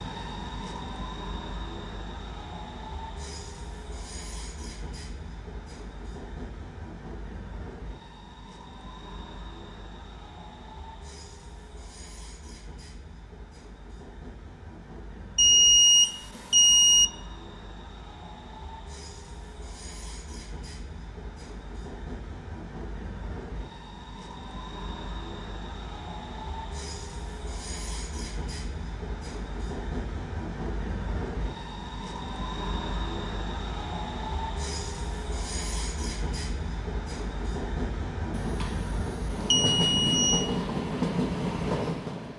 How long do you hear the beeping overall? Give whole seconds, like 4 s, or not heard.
4 s.